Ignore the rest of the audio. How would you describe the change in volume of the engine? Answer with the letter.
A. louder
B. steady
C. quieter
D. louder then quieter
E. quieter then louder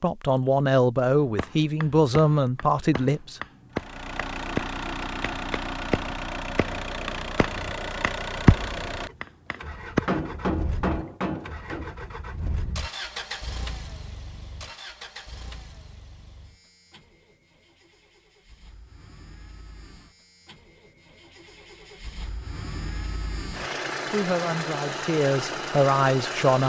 E.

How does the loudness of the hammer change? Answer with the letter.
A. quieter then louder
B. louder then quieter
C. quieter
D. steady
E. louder
B.